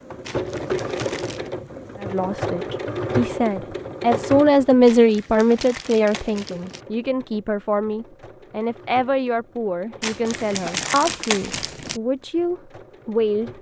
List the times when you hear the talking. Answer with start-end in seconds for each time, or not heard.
1.9-13.5.